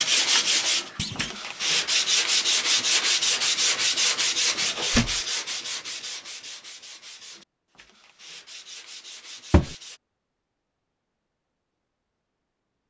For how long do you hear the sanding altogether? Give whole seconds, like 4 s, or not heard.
10 s.